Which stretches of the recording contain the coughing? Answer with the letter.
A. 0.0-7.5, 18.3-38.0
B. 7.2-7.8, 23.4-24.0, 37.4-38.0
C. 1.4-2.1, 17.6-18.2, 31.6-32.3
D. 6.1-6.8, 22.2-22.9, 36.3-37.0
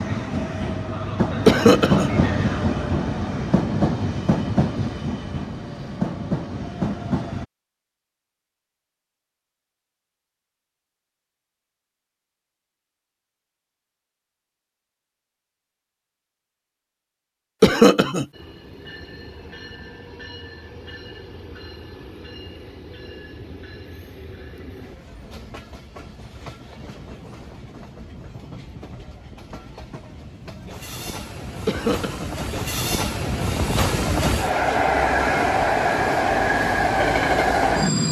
C.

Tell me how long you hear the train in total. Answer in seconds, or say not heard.
27 s.